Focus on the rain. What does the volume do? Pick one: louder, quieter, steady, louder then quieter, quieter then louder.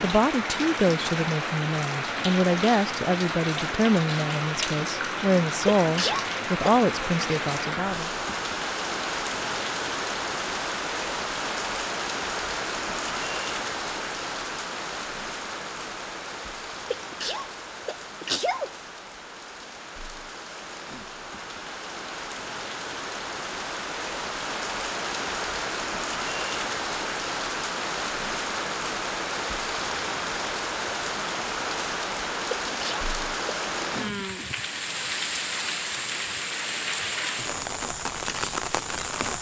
quieter then louder.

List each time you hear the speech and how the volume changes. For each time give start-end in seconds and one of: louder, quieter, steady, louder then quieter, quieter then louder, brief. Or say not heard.
0.0-8.1 steady.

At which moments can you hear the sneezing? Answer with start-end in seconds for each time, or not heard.
5.8-6.8, 16.9-18.7, 32.6-33.9.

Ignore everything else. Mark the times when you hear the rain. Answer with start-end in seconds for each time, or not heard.
0.0-39.3.